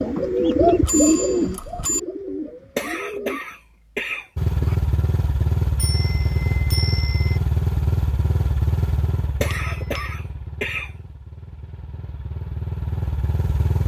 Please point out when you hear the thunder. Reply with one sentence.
The thunder can't be heard in this clip.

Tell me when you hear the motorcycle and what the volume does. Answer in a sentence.
You can hear the motorcycle from 4.3 to 13.8 s, getting quieter then louder.